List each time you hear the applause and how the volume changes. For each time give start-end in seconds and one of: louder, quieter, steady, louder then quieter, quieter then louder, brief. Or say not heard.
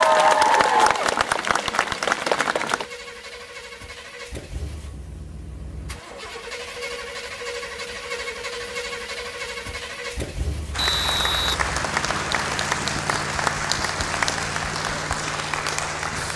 0.0-2.9 brief
10.7-16.3 steady.